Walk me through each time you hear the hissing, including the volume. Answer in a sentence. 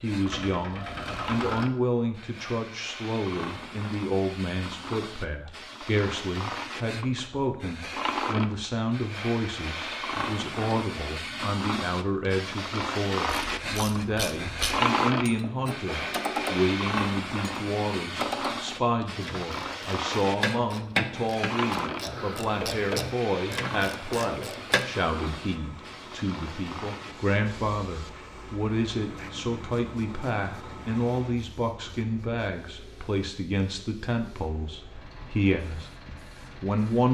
You can hear the hissing from 0.0 to 37.0 s, getting louder then quieter.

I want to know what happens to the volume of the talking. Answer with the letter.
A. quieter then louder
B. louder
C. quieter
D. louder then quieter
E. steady
E.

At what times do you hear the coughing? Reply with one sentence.
You can't hear the coughing here.